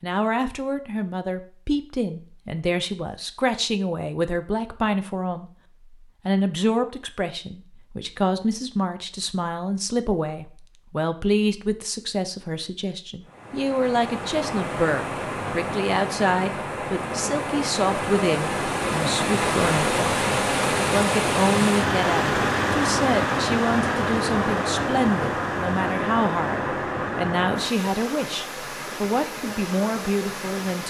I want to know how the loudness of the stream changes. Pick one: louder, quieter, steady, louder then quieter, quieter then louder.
louder then quieter.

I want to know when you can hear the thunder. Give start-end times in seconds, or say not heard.
not heard.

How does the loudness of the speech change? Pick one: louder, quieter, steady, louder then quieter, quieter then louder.
steady.